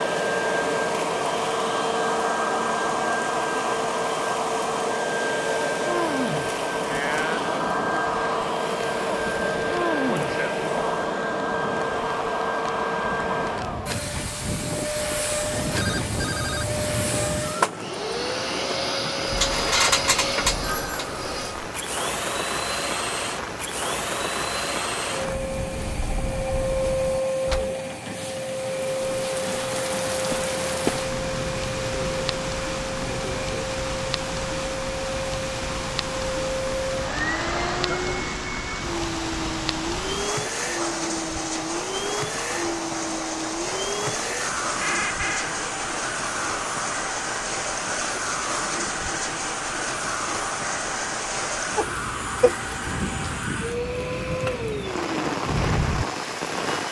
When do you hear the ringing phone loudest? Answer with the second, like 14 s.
20 s.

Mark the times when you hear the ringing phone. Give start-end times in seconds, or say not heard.
15.4-17.4, 19.4-21.1, 44.8-45.5.